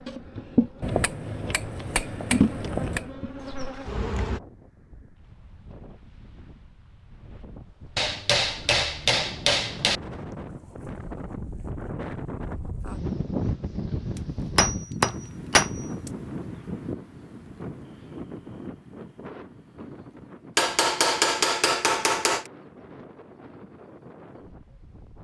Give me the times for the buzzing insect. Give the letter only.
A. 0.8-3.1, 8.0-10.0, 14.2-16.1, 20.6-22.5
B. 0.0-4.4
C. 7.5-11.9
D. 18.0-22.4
B.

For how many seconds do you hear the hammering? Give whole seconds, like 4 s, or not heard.
8 s.